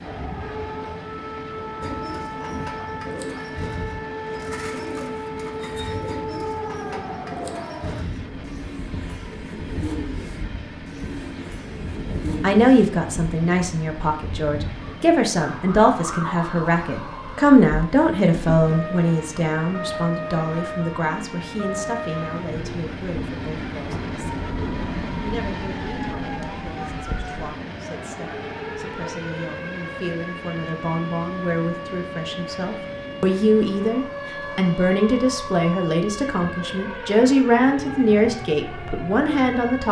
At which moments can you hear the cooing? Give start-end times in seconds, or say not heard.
1.8-12.8.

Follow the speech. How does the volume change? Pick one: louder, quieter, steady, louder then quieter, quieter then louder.
quieter then louder.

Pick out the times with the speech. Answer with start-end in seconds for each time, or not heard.
12.4-24.4, 25.2-39.8.